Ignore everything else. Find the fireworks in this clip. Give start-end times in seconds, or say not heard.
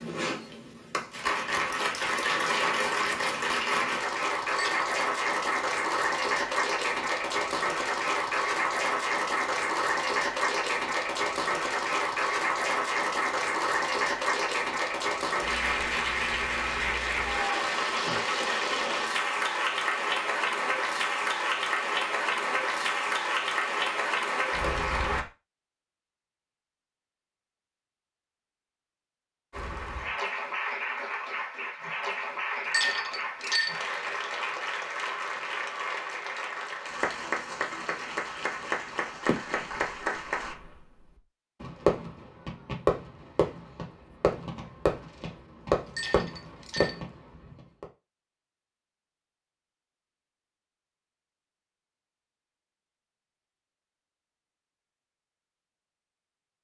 39.2-41.0, 41.6-47.9.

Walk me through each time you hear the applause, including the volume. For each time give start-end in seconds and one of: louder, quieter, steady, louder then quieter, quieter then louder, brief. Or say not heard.
0.0-25.2 steady
29.5-40.5 steady.